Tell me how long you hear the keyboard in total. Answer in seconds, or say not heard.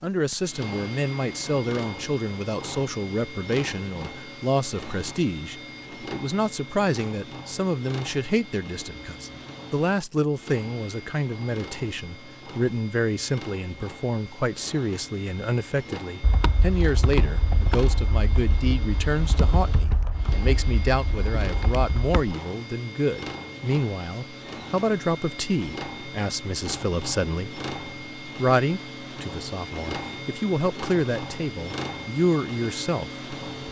6 s.